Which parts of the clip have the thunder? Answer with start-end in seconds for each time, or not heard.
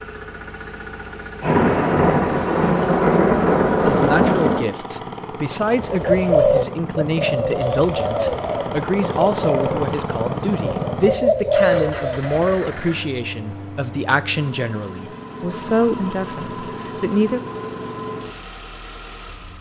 1.4-4.7.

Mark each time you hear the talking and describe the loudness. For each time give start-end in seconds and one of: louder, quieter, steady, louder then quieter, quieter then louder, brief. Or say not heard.
3.8-17.4 steady.